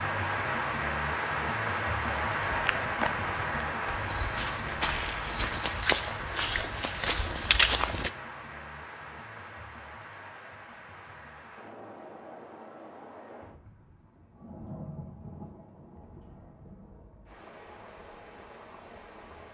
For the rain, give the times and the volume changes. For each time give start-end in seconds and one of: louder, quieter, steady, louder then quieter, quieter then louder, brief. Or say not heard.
0.0-19.4 quieter.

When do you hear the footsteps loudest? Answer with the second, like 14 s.
8 s.